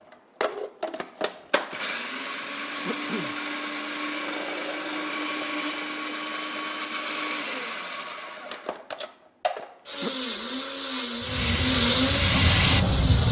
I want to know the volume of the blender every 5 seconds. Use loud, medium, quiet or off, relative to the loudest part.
medium, medium, loud.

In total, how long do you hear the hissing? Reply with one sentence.
You can hear the hissing for 2 seconds altogether.